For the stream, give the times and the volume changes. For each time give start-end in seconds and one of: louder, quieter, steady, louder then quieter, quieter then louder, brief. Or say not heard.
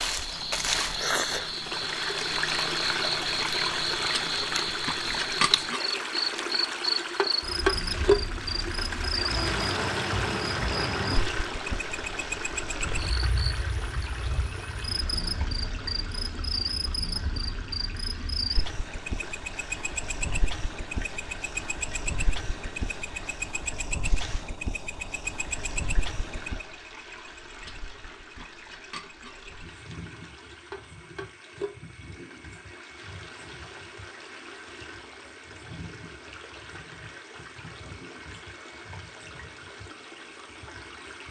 0.0-41.2 quieter.